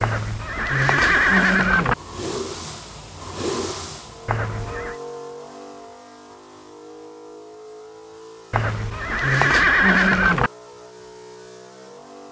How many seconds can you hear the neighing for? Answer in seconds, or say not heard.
5 s.